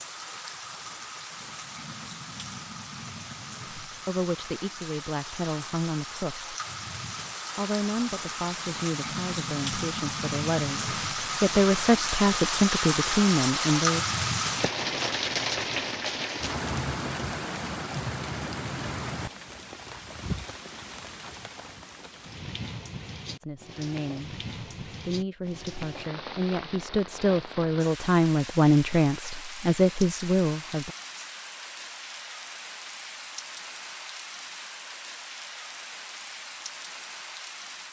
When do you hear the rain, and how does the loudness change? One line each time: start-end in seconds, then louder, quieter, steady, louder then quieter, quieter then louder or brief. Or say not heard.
0.0-37.8 louder then quieter.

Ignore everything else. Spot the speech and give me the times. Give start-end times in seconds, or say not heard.
3.9-6.5, 7.5-14.0, 23.4-30.9.